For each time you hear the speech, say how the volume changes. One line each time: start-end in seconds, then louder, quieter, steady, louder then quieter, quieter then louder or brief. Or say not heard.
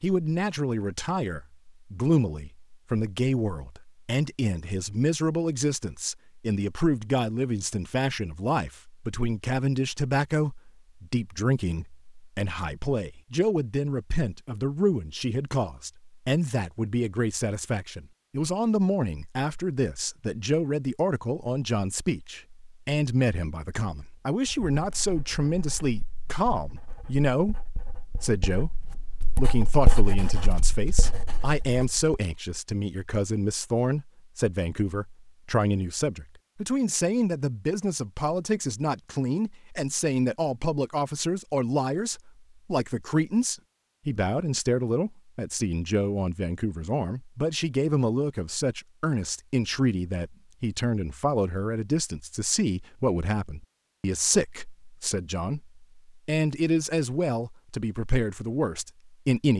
0.0-59.5 steady.